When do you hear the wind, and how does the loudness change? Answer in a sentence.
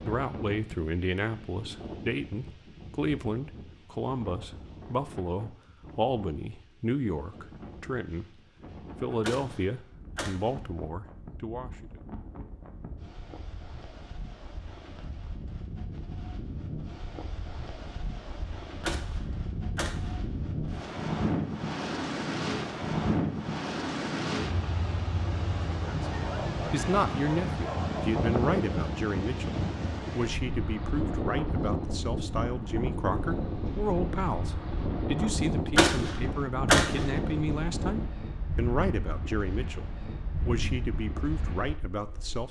The wind can be heard from 0.0 to 42.4 s, getting louder.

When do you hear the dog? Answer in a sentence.
You can hear the dog from 26.1 to 28.1 s.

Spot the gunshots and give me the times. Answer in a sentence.
The gunshots can be heard from 9.2 to 10.7 s, from 18.8 to 20.3 s and from 35.8 to 37.2 s.